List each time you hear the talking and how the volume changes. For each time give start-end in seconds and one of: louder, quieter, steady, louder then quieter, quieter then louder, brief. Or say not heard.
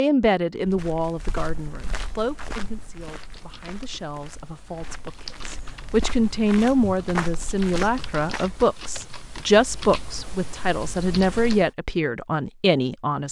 0.0-13.2 quieter then louder.